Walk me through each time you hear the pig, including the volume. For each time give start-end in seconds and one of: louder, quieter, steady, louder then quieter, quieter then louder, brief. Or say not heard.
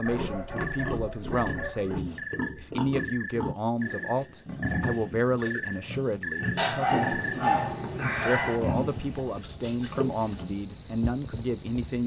0.0-10.7 steady.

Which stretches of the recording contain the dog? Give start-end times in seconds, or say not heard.
0.0-2.0, 6.5-8.6.